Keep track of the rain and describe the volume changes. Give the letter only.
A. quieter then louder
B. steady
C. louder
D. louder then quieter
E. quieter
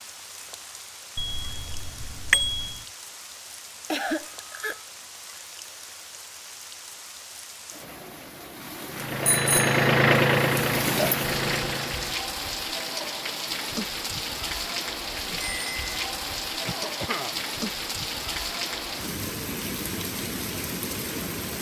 C.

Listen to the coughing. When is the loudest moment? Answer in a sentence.
The loudest moment of the coughing is at 4 seconds.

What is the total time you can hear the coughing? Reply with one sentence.
The coughing can be heard for 2 seconds in total.